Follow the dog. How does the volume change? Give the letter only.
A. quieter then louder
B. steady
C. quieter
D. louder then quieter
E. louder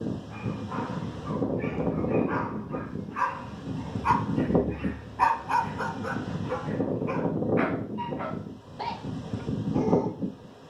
D.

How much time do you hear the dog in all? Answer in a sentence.
You can hear the dog for 10 seconds altogether.